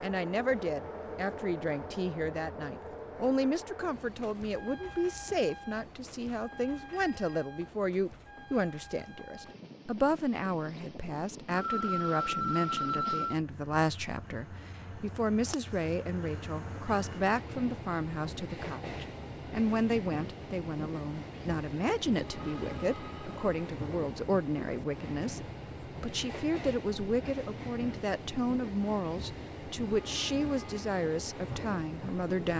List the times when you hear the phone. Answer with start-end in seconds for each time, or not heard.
6.9-7.5, 11.6-13.4, 22.4-23.4.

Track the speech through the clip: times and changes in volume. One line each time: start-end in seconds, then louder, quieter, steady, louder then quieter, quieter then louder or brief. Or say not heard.
0.0-32.5 steady.